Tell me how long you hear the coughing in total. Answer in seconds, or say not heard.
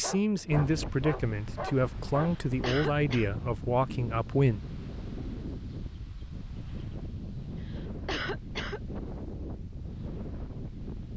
2 s.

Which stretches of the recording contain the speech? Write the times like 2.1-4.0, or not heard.
0.0-4.6.